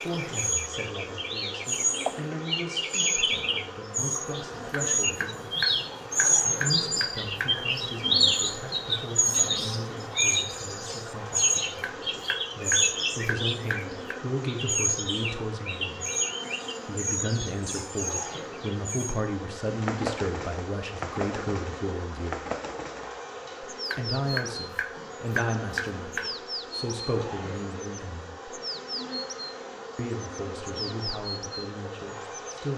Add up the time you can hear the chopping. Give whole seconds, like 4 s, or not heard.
8 s.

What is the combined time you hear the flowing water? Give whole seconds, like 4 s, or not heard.
not heard.